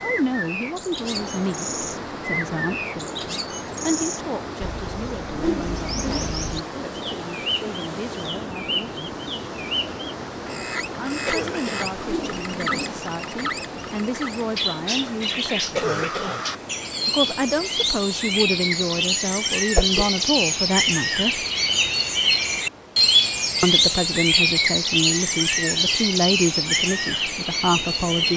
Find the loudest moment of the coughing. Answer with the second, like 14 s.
16 s.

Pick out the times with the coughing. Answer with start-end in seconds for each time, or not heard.
11.2-11.9, 15.8-16.4.